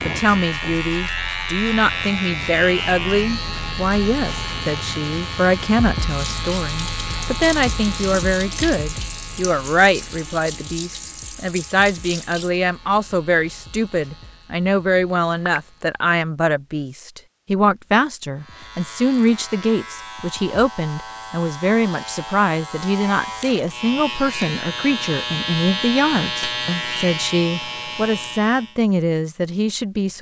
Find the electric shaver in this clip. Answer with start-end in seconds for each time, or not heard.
0.0-16.0, 18.3-28.8.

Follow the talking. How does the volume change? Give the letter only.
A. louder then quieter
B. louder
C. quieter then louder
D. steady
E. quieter
D.